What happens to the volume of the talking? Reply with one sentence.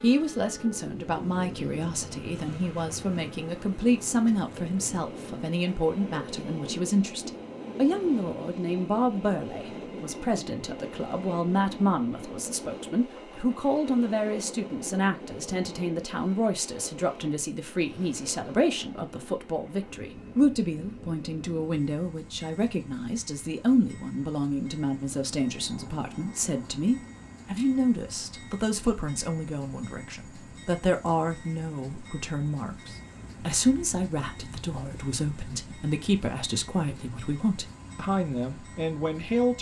The volume of the talking stays about the same.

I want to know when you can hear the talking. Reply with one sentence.
You can hear the talking from 0.0 to 39.5 s.